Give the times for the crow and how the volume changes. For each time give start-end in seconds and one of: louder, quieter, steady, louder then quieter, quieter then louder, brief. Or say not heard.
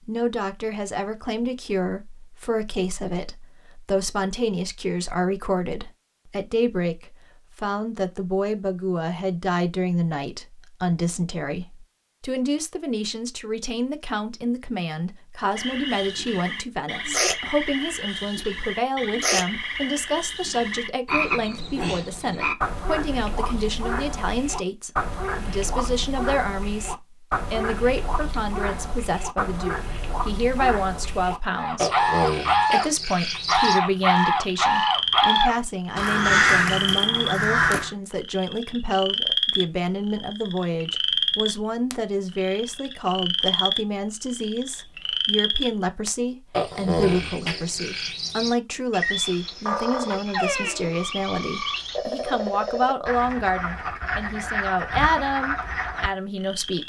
31.6-37.9 steady.